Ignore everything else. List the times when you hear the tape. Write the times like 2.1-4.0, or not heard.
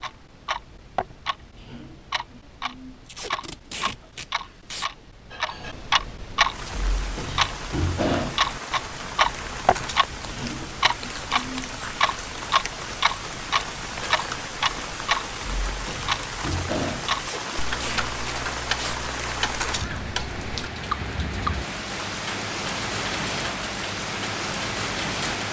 3.0-4.9, 17.1-18.9.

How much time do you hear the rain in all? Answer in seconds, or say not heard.
19 s.